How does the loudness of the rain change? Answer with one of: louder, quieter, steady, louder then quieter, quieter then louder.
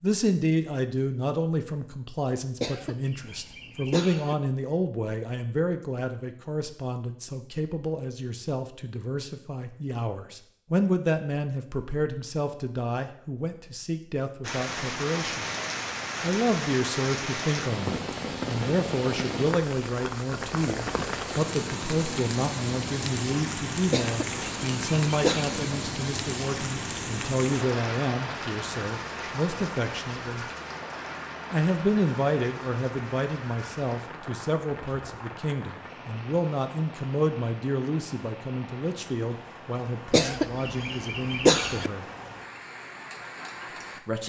quieter.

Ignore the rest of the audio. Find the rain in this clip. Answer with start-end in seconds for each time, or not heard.
14.4-44.2.